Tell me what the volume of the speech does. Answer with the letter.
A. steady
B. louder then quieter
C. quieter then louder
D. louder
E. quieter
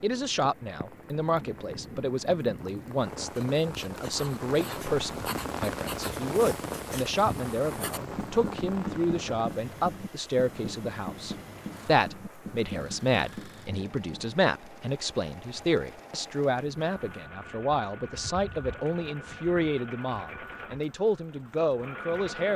A.